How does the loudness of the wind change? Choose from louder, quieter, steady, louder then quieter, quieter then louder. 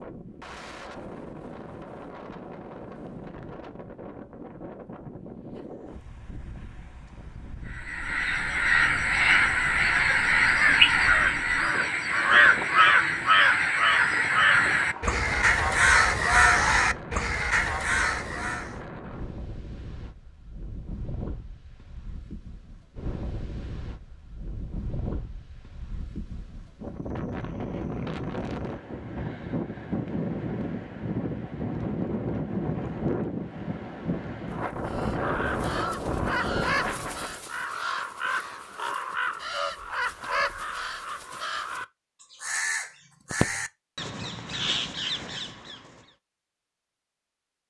louder.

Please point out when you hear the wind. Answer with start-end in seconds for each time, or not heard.
0.0-37.5.